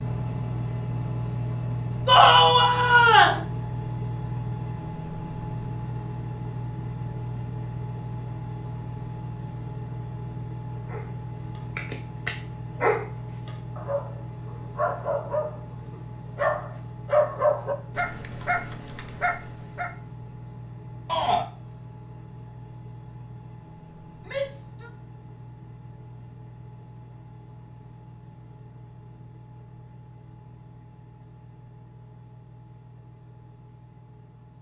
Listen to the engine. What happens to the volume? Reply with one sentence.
The loudness of the engine goes down.